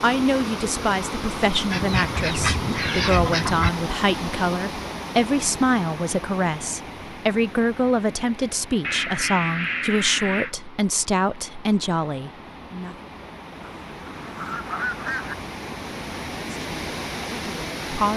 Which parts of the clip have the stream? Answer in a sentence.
You can hear the stream from 0.0 to 18.1 s.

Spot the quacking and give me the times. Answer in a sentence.
The quacking can be heard from 1.7 to 3.7 s, from 8.8 to 10.5 s and from 13.6 to 15.3 s.